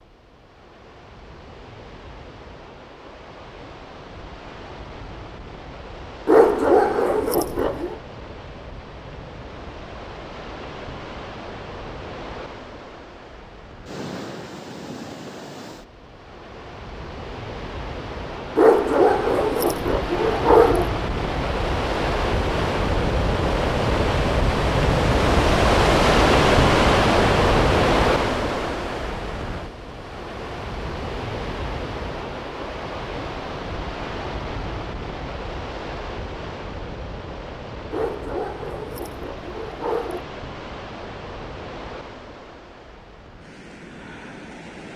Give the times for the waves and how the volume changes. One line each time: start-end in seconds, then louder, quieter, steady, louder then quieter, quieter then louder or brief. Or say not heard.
0.0-44.9 louder then quieter.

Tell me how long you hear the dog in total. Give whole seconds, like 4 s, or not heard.
6 s.